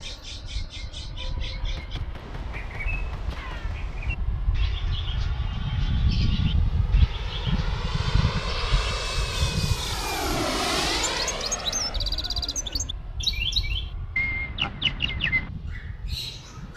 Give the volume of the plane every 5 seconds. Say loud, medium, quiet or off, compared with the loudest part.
quiet, loud, loud, quiet.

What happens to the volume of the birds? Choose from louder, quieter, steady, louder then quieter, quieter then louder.
louder.